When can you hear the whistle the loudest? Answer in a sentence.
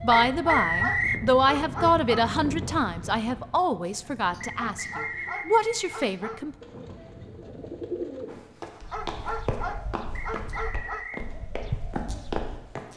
The loudest moment of the whistle is at 1 second.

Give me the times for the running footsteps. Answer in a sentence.
The running footsteps can be heard from 8.2 to 12.9 s.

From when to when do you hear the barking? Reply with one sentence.
You can hear the barking from 0.3 to 2.3 s, from 4.5 to 6.4 s and from 8.9 to 11.1 s.